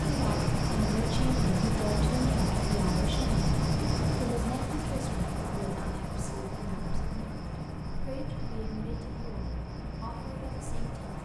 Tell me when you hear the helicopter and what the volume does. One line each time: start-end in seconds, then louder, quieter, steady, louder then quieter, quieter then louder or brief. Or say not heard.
0.0-11.1 quieter.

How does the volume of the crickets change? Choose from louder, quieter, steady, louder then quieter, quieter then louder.
quieter.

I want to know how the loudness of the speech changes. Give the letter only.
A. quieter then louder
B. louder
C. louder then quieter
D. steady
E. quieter
E.